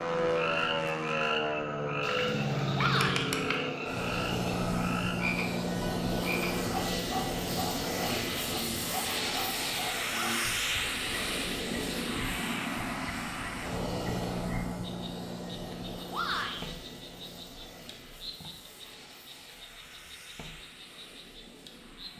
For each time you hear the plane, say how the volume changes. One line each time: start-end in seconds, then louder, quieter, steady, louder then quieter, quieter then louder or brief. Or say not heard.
0.0-22.1 quieter.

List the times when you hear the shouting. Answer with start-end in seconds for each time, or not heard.
2.8-3.3, 10.1-10.6, 16.1-16.7.